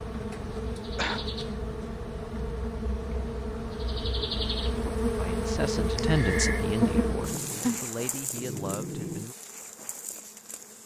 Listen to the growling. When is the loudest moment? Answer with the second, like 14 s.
8 s.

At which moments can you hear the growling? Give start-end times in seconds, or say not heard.
6.8-9.3.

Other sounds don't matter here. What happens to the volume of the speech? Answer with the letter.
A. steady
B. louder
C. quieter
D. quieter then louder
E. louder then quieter
C.